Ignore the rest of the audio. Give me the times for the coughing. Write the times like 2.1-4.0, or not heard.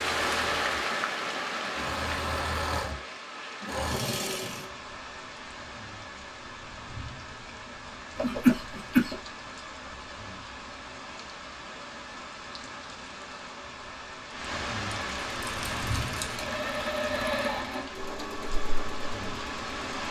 8.2-9.2.